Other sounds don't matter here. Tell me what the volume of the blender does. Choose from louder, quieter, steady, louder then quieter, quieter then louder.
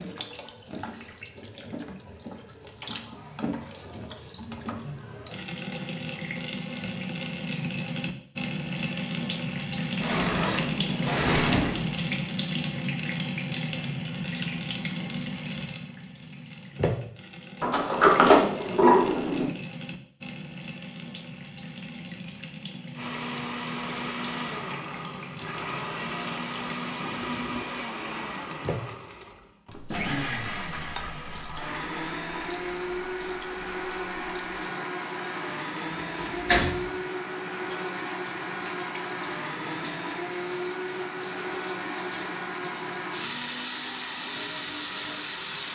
steady.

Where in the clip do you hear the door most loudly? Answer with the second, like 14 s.
18 s.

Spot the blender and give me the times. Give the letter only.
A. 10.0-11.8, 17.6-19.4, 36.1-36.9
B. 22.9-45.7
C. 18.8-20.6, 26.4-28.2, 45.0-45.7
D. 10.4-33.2
B.